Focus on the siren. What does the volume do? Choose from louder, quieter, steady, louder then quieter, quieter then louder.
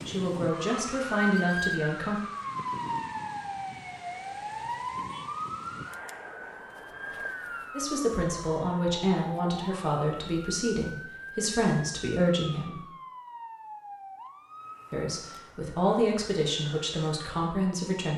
quieter.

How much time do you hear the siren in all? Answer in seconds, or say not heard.
18 s.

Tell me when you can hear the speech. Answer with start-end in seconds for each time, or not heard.
0.0-2.2, 7.7-12.8, 14.9-18.1.